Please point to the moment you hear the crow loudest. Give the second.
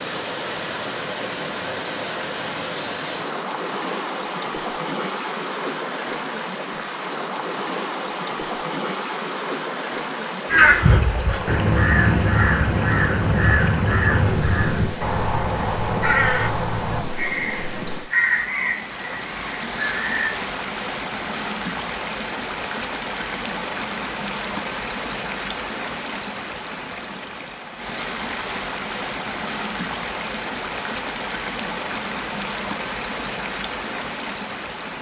11 s.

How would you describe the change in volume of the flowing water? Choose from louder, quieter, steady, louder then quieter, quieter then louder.
steady.